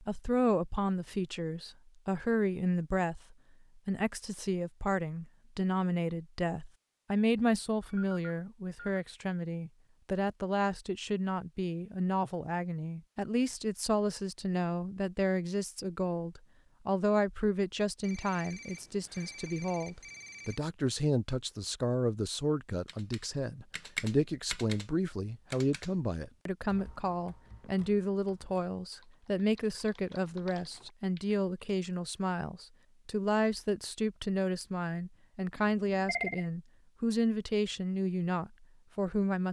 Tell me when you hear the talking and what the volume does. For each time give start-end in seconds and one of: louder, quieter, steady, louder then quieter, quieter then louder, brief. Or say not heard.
0.0-39.4 steady.